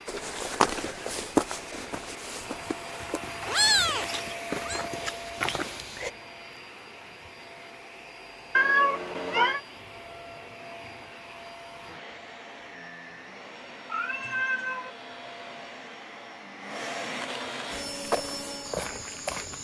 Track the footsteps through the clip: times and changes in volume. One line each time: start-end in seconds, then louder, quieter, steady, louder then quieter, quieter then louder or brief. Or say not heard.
0.1-6.1 quieter then louder
17.7-19.5 brief.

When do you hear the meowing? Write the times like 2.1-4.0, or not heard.
3.0-4.8, 8.6-9.6, 13.8-14.9.